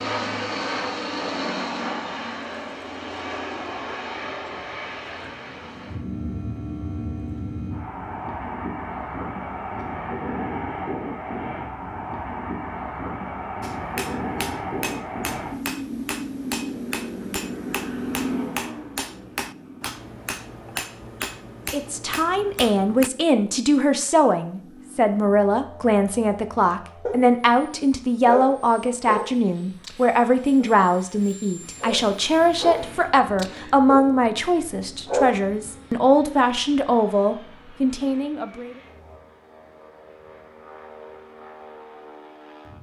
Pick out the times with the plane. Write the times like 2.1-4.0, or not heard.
0.0-42.7.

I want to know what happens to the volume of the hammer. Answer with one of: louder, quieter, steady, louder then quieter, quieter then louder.
steady.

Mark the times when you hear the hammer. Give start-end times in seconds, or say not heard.
13.6-23.1.